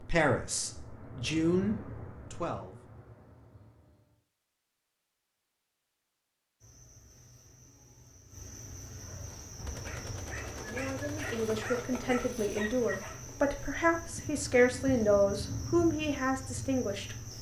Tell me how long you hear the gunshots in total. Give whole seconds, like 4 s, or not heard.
2 s.